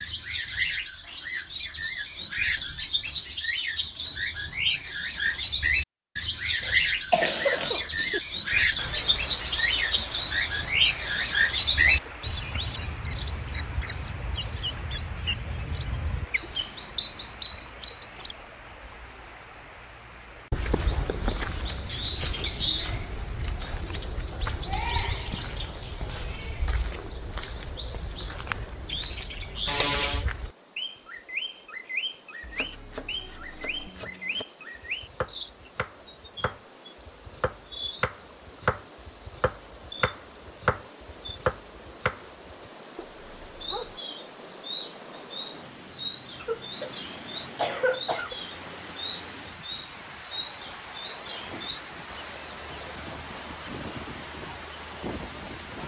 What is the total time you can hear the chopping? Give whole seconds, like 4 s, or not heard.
10 s.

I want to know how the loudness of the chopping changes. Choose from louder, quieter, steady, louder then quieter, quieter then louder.
louder.